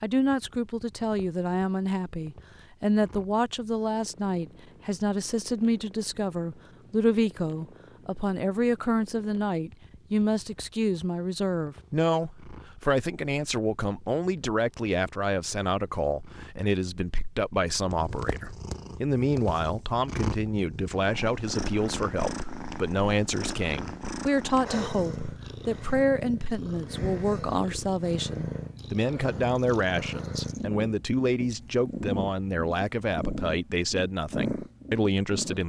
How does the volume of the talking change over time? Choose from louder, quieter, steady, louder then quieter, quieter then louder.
steady.